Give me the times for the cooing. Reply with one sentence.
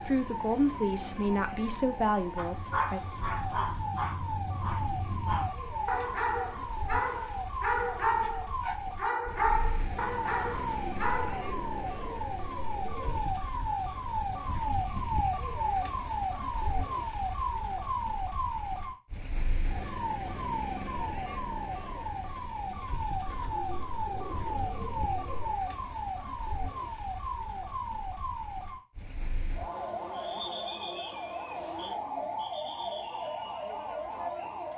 The cooing can be heard from 10.5 to 13.3 s and from 23.2 to 25.6 s.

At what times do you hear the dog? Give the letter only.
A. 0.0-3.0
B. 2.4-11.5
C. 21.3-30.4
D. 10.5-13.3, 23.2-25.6
B.